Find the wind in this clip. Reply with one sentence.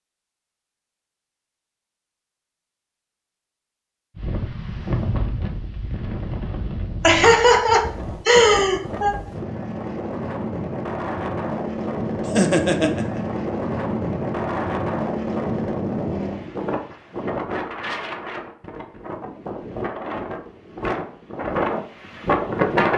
You can hear the wind from 4.2 to 22.9 s.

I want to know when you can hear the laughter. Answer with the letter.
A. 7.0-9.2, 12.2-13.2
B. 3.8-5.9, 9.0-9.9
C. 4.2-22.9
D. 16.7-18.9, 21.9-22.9
A.